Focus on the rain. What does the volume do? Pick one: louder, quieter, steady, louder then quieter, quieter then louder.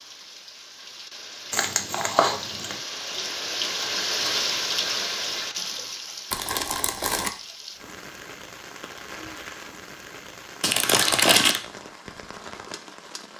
louder then quieter.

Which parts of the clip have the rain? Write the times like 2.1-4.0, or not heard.
0.0-13.3.